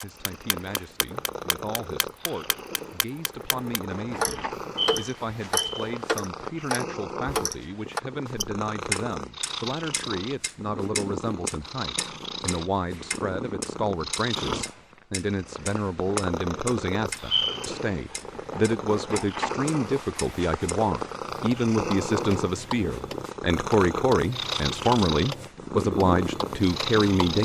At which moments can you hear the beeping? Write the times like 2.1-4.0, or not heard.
4.6-5.9, 17.1-17.7.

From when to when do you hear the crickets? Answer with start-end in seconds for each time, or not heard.
not heard.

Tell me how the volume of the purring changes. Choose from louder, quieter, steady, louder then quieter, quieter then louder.
louder.